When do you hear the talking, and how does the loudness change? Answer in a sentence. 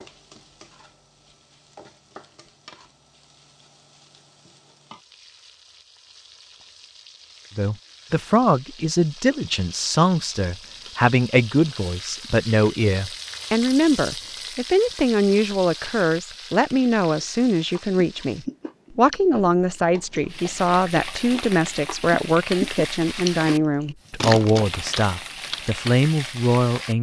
The talking can be heard from 7.5 to 26.9 s, at a steady volume.